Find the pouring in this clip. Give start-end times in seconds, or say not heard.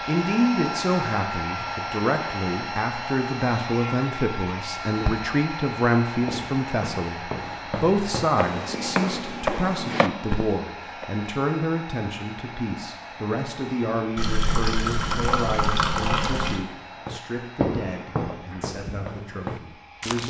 14.2-16.6.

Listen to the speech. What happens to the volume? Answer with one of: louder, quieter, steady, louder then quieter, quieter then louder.
quieter.